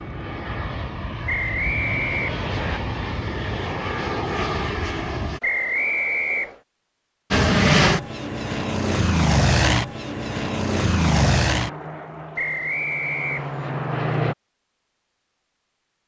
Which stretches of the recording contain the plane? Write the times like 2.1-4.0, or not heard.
0.0-5.4, 7.3-14.3.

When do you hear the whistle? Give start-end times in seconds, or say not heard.
1.2-2.8, 5.4-6.5, 12.3-13.8.